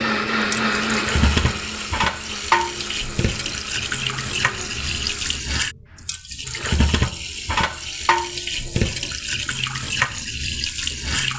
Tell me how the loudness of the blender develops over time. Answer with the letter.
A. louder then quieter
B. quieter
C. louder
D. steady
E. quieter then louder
B.